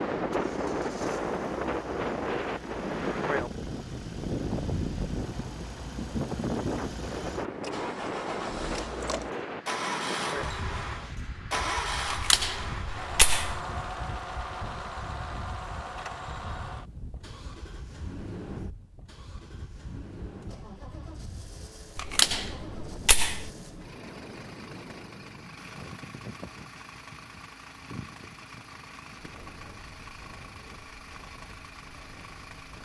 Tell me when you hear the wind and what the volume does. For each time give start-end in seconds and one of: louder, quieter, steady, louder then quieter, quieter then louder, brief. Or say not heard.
0.0-32.8 quieter.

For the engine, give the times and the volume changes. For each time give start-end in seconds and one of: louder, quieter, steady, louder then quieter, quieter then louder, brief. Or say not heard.
0.1-32.8 louder then quieter.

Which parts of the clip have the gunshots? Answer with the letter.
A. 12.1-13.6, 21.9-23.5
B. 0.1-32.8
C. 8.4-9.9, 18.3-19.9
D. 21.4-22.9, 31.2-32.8
A.